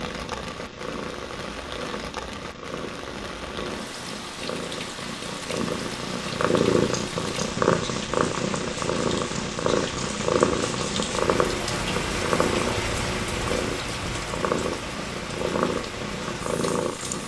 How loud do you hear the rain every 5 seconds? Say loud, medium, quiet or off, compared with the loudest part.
medium, medium, loud, medium.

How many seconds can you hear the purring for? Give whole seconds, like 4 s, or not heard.
17 s.